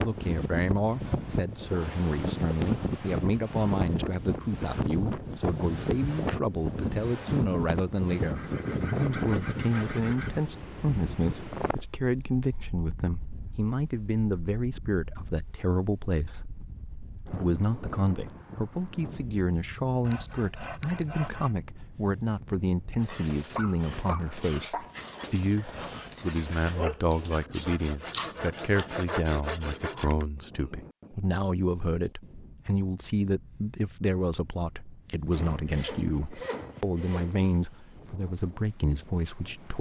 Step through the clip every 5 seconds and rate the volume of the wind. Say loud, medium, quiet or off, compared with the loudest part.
loud, loud, medium, quiet, quiet, quiet, quiet, quiet.